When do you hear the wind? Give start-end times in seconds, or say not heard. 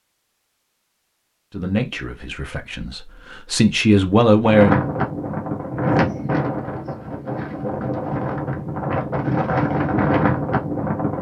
4.4-11.1.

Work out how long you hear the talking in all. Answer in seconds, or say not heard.
3 s.